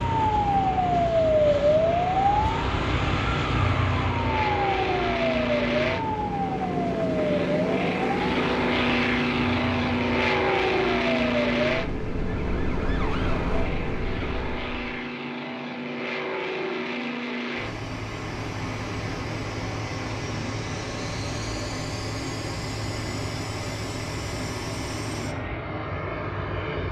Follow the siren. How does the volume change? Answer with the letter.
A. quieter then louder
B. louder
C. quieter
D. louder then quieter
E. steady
C.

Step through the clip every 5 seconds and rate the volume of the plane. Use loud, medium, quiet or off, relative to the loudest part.
medium, loud, loud, medium, medium, medium.